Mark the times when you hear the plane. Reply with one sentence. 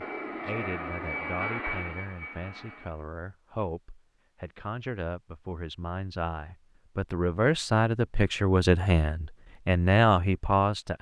You can hear the plane from 0.0 to 3.0 s.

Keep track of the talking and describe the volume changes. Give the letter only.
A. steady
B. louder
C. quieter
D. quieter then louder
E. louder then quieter
B.